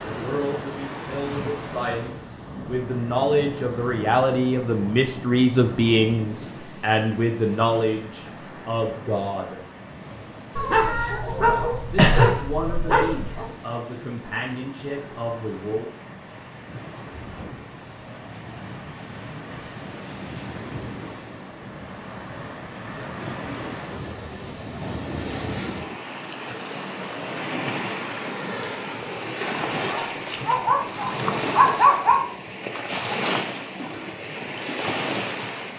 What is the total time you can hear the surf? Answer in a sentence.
You can hear the surf for 36 seconds altogether.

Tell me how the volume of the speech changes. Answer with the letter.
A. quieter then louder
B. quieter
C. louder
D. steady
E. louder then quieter
E.